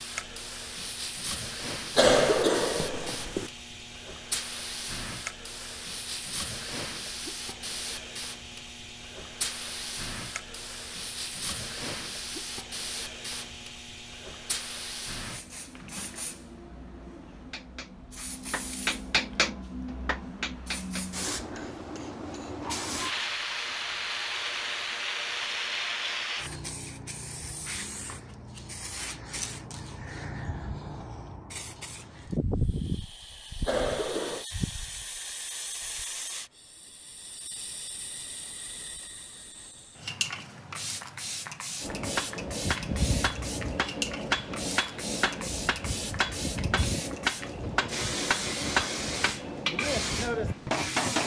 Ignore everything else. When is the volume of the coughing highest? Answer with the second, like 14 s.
2 s.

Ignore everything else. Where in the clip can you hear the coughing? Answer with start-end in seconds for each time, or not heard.
1.9-3.5, 33.6-34.5.